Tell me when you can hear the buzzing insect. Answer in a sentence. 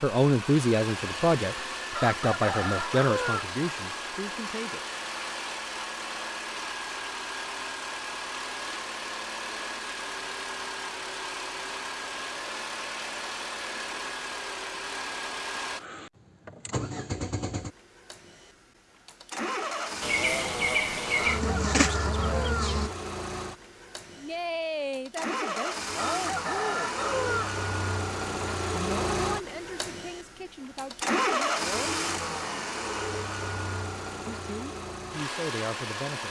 You can hear the buzzing insect from 20.0 to 22.9 s.